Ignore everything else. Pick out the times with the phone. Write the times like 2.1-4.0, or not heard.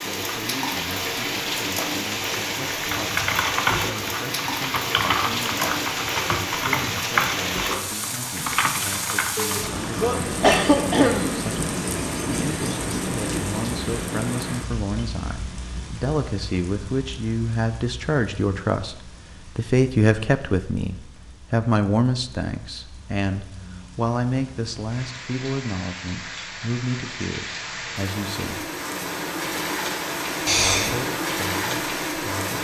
not heard.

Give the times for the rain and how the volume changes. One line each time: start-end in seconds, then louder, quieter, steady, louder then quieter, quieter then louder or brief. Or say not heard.
0.0-32.5 quieter then louder.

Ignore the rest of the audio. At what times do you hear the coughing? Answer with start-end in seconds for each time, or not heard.
9.3-11.3, 30.4-30.9.